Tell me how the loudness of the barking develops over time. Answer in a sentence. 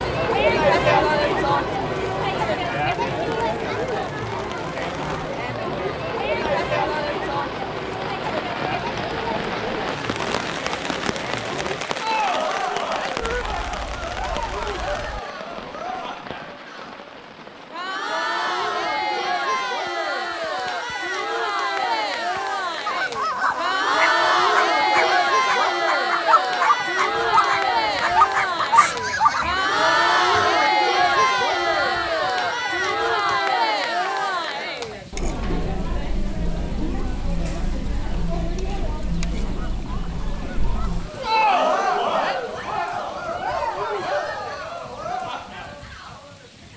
The loudness of the barking goes up.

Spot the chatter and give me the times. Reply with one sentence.
You can hear the chatter from 0.0 to 46.7 s.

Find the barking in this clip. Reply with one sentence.
You can hear the barking from 23.4 to 29.6 s.